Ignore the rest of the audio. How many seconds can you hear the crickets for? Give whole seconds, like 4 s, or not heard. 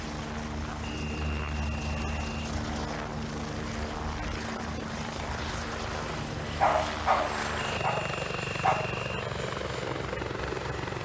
not heard.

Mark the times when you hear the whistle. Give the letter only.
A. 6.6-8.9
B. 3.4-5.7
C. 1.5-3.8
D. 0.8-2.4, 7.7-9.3
D.